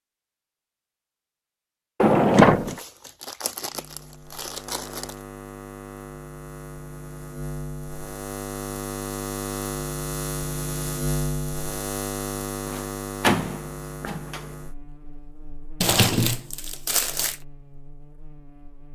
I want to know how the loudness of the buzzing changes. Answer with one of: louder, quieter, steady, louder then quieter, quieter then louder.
louder then quieter.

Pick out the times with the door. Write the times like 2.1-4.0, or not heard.
2.0-2.8, 12.7-14.4.